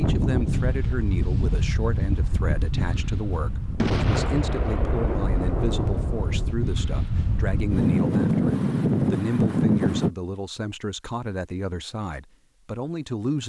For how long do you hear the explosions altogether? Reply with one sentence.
The explosions can be heard for 3 seconds in total.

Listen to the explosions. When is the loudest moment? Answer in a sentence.
The volume of the explosions peaks at 4 seconds.